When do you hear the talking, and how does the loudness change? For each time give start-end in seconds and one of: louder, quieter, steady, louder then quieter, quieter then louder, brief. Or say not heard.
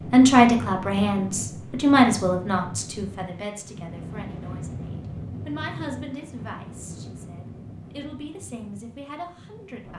0.1-9.9 quieter.